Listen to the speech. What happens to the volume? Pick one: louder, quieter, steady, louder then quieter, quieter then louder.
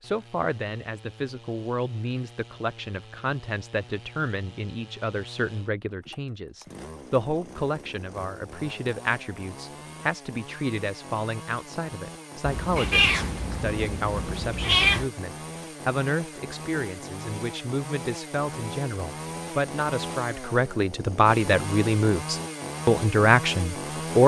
louder.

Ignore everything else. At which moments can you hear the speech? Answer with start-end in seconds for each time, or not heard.
0.0-24.2.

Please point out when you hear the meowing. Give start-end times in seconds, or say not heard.
12.4-15.1.